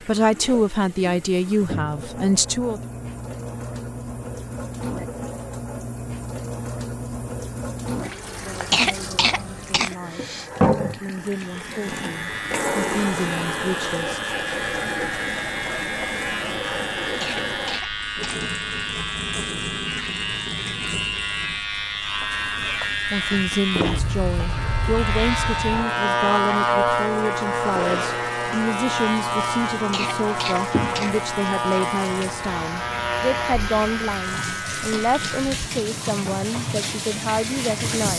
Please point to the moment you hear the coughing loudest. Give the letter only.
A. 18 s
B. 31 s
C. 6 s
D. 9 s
D.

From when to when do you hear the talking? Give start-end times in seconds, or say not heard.
0.1-2.8, 8.3-14.2, 23.1-38.1.